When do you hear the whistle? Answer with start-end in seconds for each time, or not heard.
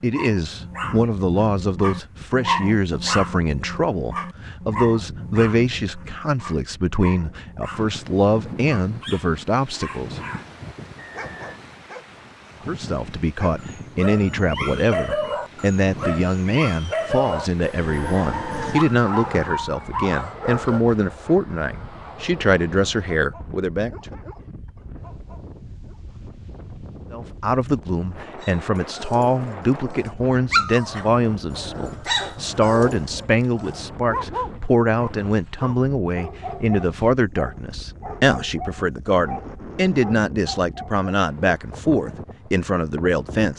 10.9-11.6.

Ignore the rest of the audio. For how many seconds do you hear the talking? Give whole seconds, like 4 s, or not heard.
38 s.